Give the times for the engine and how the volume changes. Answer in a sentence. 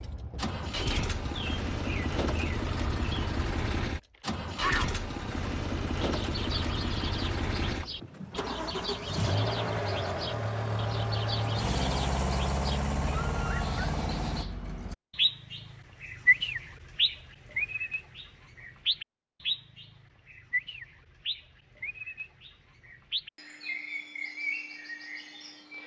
The engine can be heard from 0.0 to 14.4 s, at a steady volume.